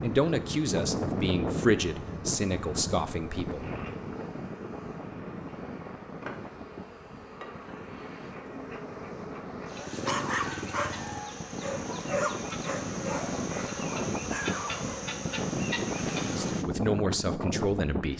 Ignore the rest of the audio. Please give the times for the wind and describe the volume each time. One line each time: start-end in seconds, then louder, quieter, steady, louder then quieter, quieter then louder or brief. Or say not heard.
0.0-18.1 quieter then louder.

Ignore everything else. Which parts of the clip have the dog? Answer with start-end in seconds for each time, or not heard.
9.8-15.1.